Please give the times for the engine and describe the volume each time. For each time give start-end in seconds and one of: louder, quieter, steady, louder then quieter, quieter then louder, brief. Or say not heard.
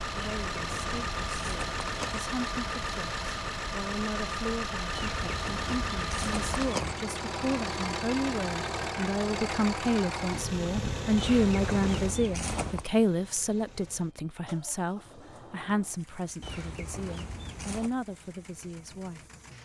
0.0-19.5 quieter.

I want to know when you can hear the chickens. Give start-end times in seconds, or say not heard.
0.1-2.2, 4.9-7.0, 11.2-12.9, 16.4-17.9.